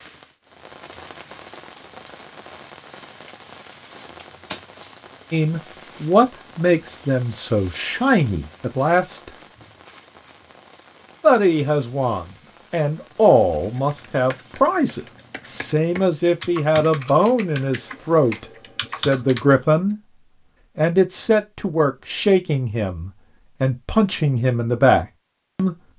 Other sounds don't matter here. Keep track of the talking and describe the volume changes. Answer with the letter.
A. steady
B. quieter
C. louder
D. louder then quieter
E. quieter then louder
A.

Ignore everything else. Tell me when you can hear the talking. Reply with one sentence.
The talking can be heard from 5.3 to 9.3 s, from 11.2 to 19.9 s and from 20.8 to 25.8 s.